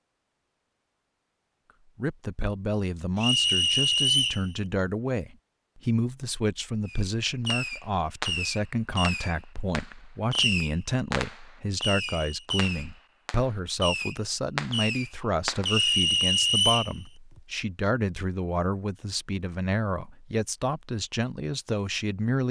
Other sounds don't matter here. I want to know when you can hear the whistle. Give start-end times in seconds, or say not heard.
3.2-4.5, 11.9-12.4, 15.7-16.9.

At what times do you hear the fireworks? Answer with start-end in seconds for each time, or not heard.
6.8-16.0.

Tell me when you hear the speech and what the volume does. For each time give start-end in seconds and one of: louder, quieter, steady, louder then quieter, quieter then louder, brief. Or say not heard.
1.9-22.4 steady.